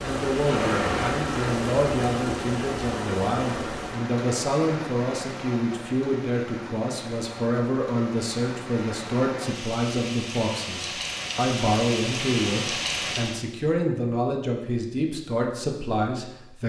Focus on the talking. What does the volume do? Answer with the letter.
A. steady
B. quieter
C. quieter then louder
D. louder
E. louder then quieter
A.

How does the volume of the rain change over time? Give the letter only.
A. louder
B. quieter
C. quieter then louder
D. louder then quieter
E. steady
C.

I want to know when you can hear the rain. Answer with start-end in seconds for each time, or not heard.
0.0-13.4.